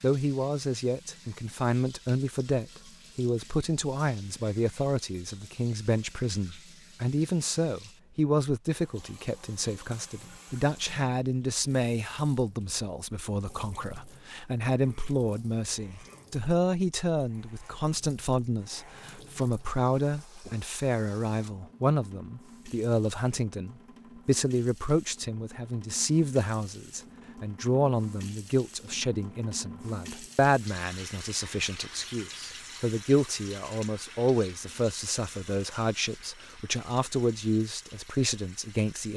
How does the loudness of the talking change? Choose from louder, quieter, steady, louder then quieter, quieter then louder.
steady.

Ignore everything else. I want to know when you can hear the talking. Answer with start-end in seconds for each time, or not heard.
0.0-39.1.